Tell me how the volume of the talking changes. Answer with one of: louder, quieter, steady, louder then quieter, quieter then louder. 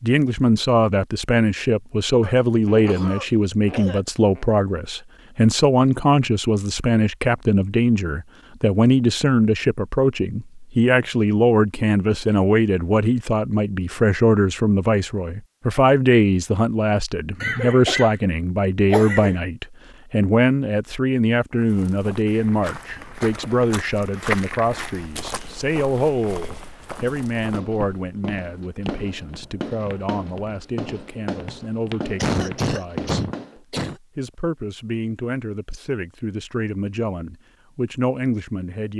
quieter.